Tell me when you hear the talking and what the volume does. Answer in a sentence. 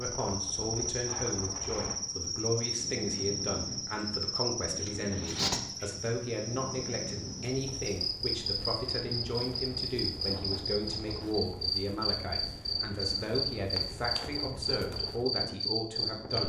The talking can be heard from 0.0 to 16.4 s, at a steady volume.